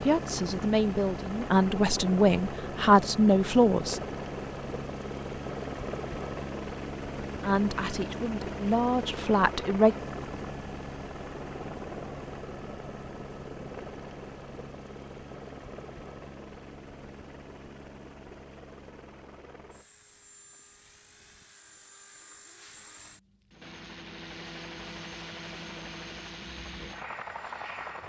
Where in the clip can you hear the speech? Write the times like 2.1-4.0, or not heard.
0.0-4.0, 7.4-9.9.